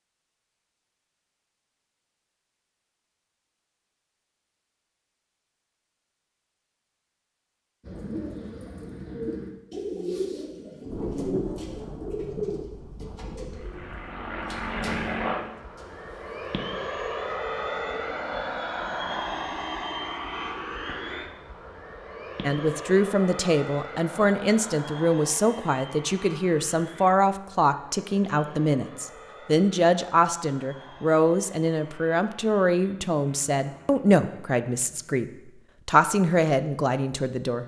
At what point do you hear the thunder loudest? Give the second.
11 s.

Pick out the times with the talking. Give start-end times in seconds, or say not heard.
22.4-37.6.